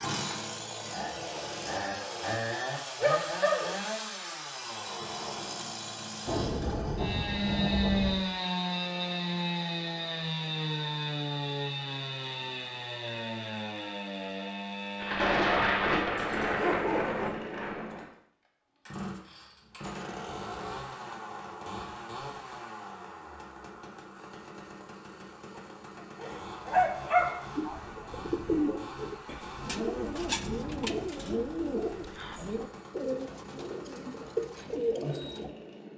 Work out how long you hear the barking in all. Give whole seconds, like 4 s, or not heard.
3 s.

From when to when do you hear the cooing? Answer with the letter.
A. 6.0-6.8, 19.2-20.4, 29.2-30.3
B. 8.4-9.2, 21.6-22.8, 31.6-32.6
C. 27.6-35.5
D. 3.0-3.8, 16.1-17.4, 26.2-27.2
C.